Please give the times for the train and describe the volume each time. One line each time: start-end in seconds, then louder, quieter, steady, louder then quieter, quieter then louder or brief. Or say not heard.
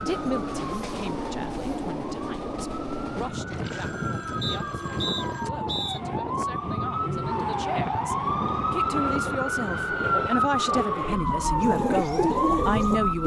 0.0-13.2 steady.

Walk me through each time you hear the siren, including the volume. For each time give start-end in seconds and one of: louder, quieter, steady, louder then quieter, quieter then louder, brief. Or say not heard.
0.0-13.2 louder.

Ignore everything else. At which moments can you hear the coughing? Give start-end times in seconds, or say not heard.
not heard.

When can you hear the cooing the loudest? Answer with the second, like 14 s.
12 s.